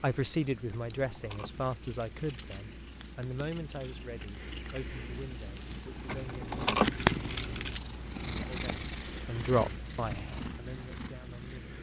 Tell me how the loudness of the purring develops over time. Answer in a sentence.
The loudness of the purring goes up, then down.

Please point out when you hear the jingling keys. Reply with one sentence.
You can hear the jingling keys from 0.7 to 2.6 s and from 6.0 to 7.8 s.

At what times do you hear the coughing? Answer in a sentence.
You can't hear the coughing here.